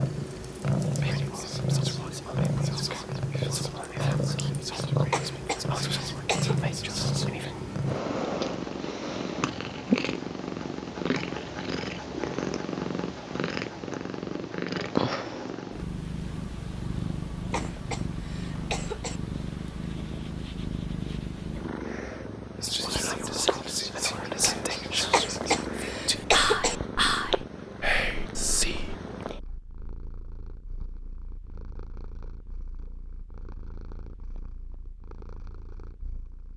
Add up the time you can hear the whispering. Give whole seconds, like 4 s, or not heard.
13 s.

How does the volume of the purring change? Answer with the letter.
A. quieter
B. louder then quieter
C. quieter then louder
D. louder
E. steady
A.